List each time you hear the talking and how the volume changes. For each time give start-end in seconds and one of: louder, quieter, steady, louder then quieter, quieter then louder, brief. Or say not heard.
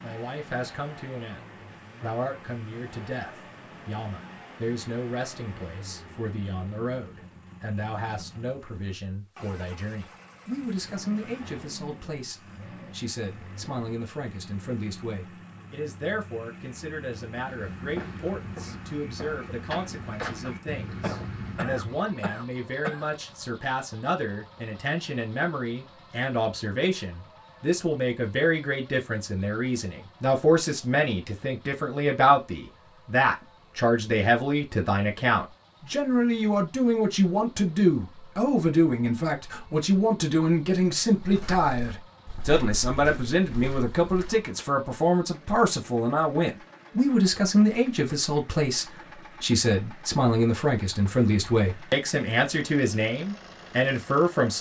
0.0-54.5 louder.